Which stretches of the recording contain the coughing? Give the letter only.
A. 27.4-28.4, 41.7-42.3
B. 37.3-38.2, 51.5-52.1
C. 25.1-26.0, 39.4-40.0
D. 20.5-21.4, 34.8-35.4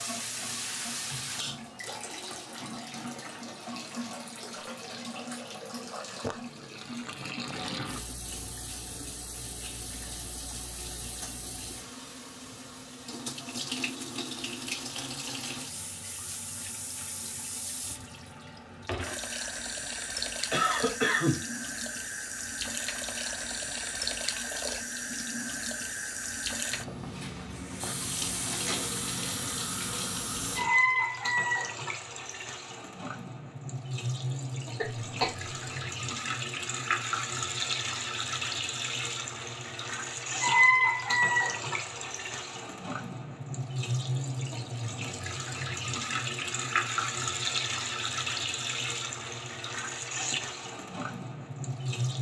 D.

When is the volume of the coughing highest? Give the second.
21 s.